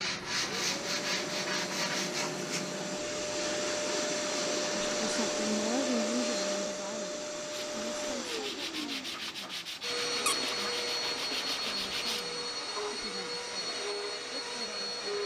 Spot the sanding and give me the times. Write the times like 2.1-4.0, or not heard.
0.0-5.2, 7.5-12.3.